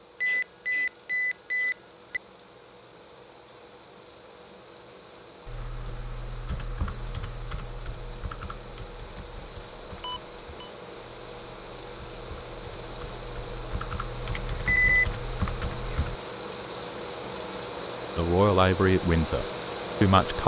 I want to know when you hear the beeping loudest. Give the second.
15 s.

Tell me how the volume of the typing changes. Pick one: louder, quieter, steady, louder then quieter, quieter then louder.
quieter then louder.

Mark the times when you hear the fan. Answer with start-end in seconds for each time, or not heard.
0.0-20.4.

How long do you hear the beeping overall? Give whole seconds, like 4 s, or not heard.
3 s.